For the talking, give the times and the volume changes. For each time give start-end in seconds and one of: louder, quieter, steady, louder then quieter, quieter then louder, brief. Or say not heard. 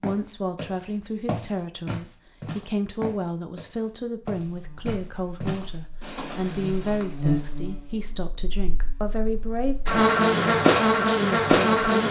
0.0-12.0 steady.